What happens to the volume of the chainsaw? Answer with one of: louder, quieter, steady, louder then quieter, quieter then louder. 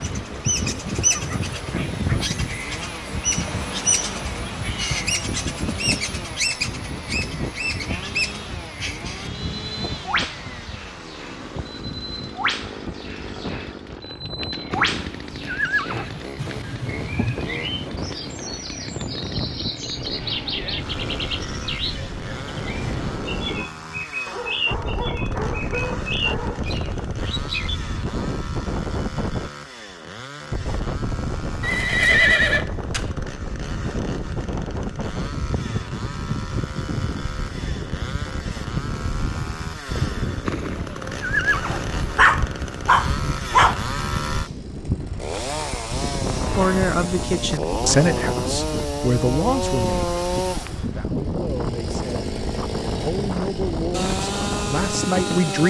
louder.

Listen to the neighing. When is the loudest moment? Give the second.
32 s.